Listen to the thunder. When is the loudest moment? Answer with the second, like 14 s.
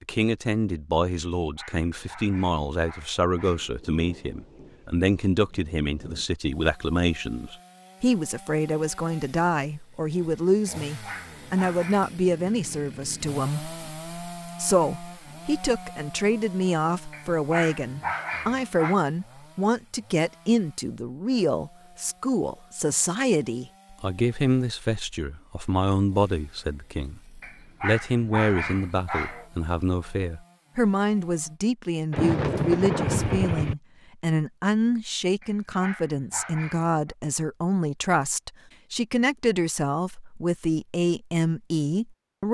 33 s.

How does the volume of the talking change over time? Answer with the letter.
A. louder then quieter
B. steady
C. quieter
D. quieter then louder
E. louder
B.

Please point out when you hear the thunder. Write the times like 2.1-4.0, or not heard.
3.5-6.2, 32.1-33.8.